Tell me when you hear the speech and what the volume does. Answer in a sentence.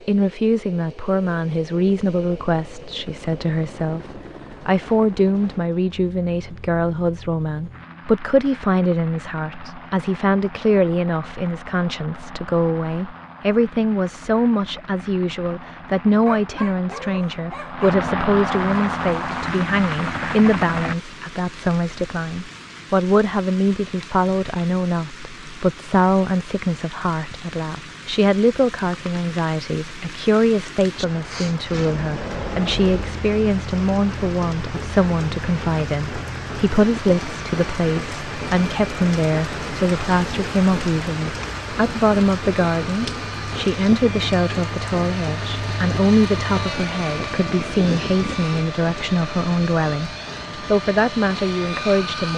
You can hear the speech from 0.1 to 52.3 s, at a steady volume.